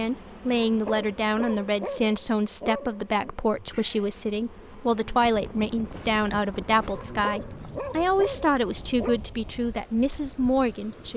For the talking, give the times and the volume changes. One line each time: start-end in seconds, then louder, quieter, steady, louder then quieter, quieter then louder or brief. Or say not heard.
0.0-11.1 steady.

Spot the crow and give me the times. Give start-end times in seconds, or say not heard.
not heard.